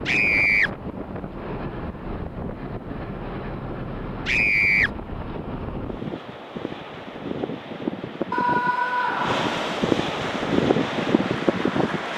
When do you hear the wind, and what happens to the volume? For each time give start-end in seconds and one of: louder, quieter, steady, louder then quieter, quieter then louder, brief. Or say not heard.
0.0-12.1 louder.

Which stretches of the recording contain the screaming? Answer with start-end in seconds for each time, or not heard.
0.1-0.7, 4.2-4.9, 8.3-9.6.